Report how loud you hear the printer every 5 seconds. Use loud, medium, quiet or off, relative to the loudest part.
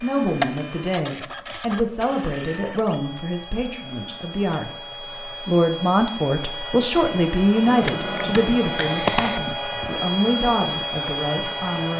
medium, loud, loud.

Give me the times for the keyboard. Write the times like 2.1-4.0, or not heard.
7.7-9.4.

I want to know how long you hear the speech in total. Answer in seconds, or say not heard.
12 s.